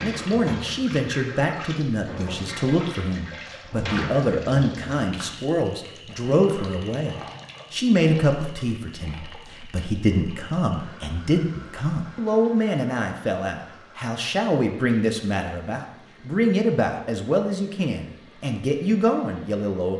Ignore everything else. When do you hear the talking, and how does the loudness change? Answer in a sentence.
The talking can be heard from 0.0 to 19.9 s, at a steady volume.